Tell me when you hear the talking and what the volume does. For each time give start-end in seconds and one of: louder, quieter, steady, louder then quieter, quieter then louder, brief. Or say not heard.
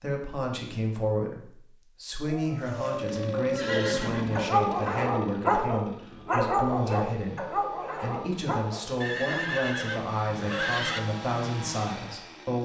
0.0-12.6 steady.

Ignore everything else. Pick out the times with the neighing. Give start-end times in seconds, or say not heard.
2.6-4.5, 9.0-11.0.